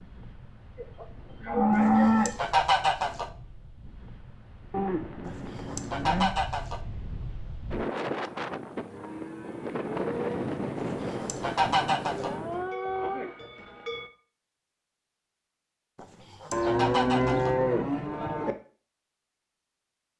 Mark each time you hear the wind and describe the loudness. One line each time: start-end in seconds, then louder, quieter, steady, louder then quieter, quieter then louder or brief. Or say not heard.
0.0-12.8 louder.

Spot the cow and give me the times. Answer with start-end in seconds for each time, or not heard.
0.8-2.3, 4.7-6.3, 8.8-10.4, 12.2-14.1, 16.5-18.6.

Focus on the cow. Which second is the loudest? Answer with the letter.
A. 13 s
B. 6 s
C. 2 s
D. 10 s
C.